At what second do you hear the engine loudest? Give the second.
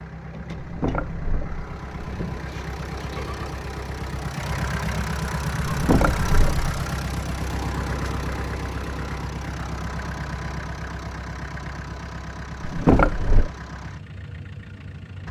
6 s.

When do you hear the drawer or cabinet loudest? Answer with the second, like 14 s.
13 s.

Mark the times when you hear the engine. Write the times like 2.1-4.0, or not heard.
0.0-15.2.